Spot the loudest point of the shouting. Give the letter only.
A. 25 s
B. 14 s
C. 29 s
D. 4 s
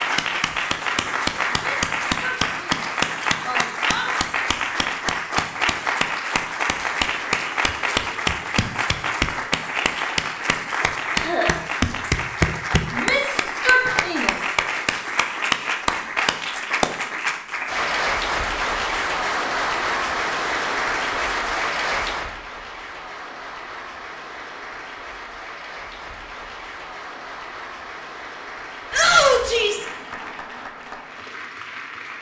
C.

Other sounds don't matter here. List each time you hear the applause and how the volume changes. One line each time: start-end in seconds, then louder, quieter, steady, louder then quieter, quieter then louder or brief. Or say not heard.
0.0-32.1 quieter.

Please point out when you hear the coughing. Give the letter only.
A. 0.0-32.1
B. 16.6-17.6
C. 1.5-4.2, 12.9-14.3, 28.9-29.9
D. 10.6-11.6
D.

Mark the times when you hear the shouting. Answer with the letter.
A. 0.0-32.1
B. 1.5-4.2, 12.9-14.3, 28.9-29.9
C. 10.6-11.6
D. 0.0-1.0
B.